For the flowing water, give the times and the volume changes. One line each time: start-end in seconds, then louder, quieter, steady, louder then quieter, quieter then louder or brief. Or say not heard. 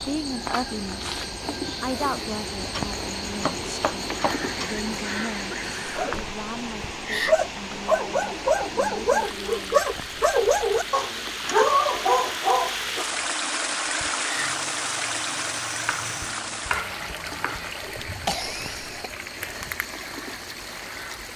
0.0-21.3 louder then quieter.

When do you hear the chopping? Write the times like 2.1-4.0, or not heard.
2.7-4.7, 15.8-17.8.